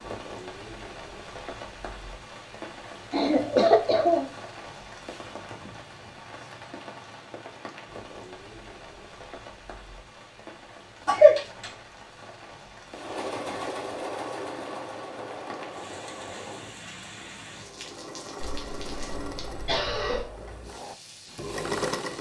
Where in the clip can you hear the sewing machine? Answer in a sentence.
You can hear the sewing machine from 12.9 to 22.1 s.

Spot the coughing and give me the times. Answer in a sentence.
The coughing can be heard from 3.1 to 4.3 s, from 11.1 to 11.7 s and from 18.4 to 20.2 s.